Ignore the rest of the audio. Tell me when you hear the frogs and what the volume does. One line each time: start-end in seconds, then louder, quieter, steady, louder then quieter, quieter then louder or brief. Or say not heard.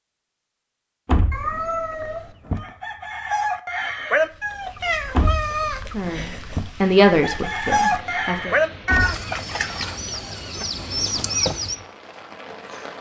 not heard.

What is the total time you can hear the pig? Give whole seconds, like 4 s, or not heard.
not heard.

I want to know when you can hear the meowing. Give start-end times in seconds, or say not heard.
1.3-2.4, 4.8-6.7, 8.8-9.9.